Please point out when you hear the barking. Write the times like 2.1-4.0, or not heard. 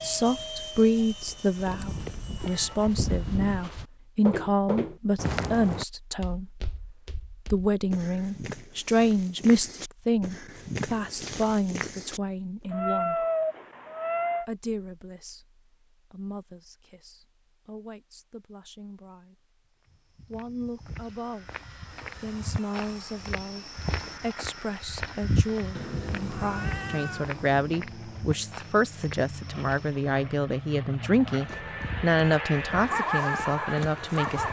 31.4-34.4.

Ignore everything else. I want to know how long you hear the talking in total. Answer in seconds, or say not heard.
31 s.